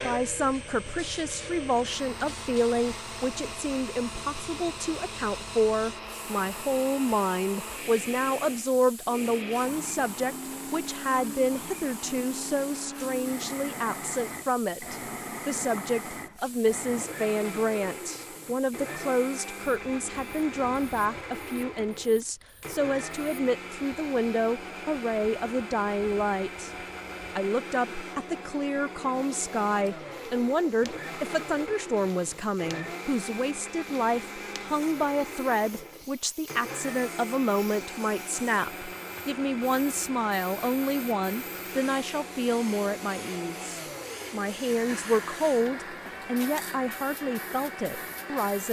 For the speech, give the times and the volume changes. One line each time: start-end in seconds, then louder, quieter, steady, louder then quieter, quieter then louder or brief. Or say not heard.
0.0-26.7 steady
27.4-48.6 steady.